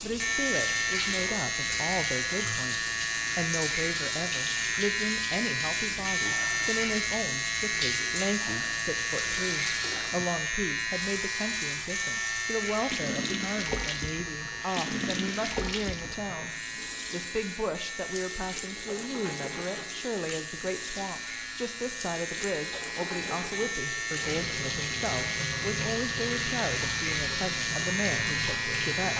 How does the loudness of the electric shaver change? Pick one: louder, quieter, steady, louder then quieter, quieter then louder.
quieter then louder.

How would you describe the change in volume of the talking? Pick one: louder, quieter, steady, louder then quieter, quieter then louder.
steady.